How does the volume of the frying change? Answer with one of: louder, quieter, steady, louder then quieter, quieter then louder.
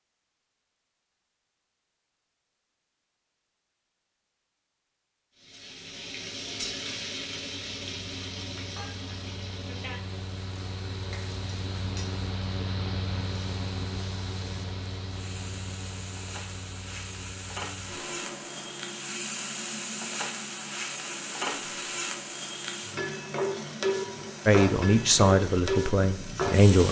quieter then louder.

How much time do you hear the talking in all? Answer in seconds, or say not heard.
2 s.